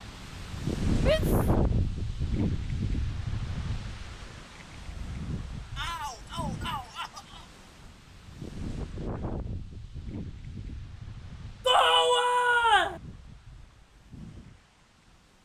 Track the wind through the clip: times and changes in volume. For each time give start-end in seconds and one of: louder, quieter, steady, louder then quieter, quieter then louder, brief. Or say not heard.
0.0-15.4 quieter.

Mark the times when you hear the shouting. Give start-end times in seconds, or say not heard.
0.9-1.5, 5.8-7.5, 11.7-13.0.